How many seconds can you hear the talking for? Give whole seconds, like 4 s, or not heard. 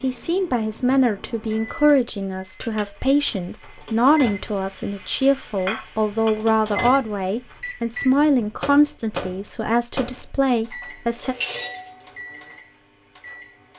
11 s.